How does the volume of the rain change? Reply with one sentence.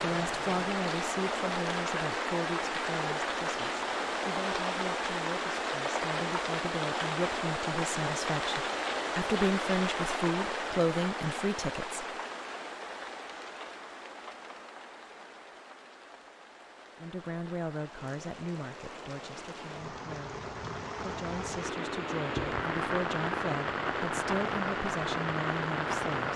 The loudness of the rain goes down, then up.